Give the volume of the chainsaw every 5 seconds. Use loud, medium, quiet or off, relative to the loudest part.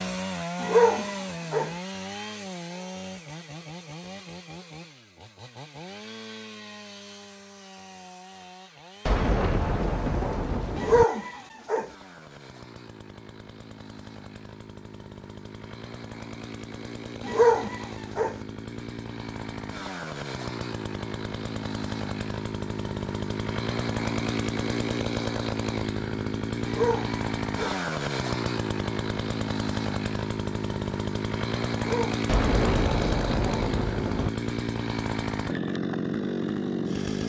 medium, quiet, quiet, medium, loud, loud, loud, loud.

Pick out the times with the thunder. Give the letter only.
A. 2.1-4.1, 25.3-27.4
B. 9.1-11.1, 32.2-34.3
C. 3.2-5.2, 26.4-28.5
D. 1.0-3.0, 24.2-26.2
B.